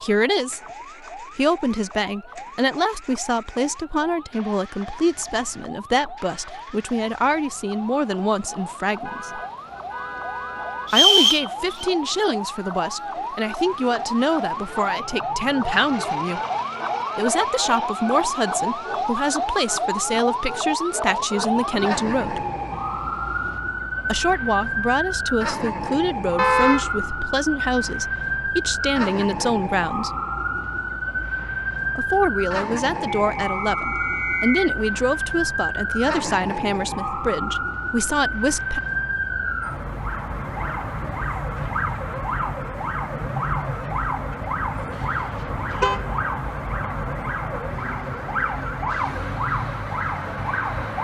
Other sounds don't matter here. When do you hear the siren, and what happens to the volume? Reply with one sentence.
The siren can be heard from 0.0 to 50.9 s, getting louder.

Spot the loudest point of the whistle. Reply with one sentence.
The loudest moment of the whistle is at 11 seconds.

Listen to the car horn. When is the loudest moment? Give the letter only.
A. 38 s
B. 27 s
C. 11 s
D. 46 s
B.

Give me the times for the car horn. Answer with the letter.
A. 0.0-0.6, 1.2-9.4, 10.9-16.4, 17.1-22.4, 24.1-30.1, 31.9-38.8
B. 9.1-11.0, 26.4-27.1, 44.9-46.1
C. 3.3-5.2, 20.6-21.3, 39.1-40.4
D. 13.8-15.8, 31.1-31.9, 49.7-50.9
B.